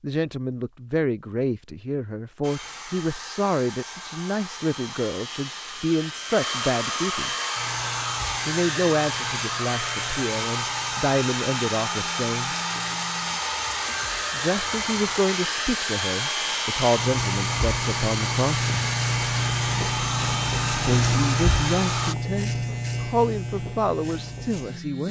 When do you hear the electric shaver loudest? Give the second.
21 s.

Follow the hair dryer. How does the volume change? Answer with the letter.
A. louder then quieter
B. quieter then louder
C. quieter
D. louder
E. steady
D.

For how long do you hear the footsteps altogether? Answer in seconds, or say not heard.
not heard.